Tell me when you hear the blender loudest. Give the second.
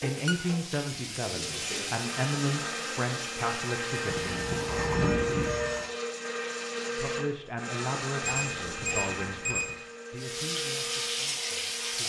5 s.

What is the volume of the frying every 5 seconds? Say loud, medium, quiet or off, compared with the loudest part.
medium, off, loud.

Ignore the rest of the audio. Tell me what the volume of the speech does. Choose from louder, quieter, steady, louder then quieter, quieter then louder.
quieter.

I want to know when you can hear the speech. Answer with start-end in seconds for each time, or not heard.
0.0-4.3, 7.0-12.0.